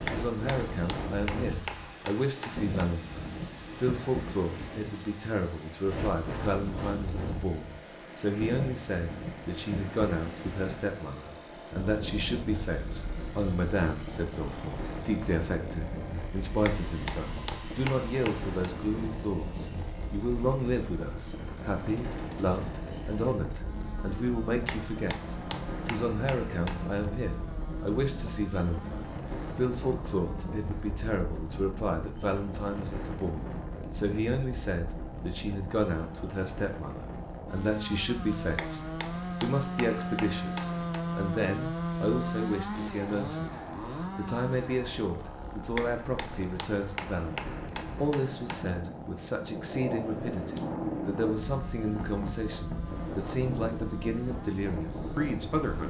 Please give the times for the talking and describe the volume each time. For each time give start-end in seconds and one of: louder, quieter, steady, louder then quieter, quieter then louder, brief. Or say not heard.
0.0-38.8 steady
39.4-55.8 steady.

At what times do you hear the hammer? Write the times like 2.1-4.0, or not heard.
0.1-2.9, 16.6-18.7, 24.6-27.1, 38.5-41.0, 45.8-48.6.